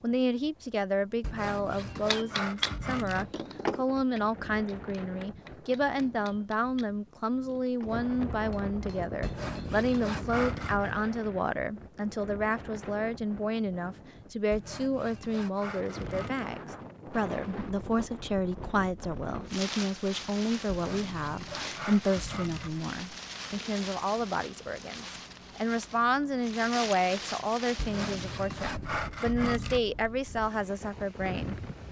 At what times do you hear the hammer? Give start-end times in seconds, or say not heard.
1.9-10.1.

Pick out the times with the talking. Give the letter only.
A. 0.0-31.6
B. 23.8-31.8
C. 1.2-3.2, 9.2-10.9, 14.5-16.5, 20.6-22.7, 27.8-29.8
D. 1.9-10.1
A.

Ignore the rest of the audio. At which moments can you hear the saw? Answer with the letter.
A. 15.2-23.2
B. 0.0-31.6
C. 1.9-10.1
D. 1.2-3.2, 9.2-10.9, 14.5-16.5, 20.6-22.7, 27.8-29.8
D.